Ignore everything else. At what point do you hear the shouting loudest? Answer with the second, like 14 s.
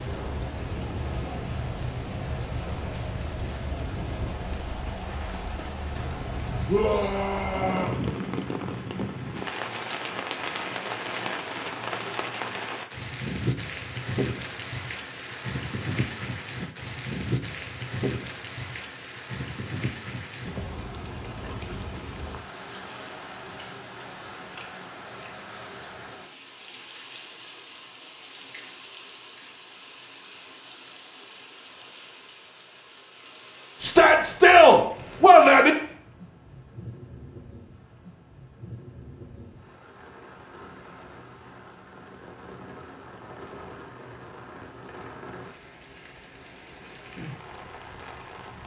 35 s.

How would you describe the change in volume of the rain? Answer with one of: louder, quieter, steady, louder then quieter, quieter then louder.
quieter.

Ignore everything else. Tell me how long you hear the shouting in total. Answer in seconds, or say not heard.
3 s.